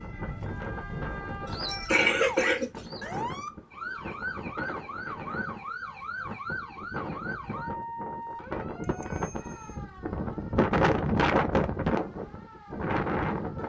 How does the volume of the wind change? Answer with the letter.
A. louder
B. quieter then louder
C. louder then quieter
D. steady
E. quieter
A.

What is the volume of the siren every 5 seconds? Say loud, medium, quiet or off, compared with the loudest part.
loud, loud, quiet.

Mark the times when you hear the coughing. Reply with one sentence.
You can hear the coughing from 1.4 to 3.0 s.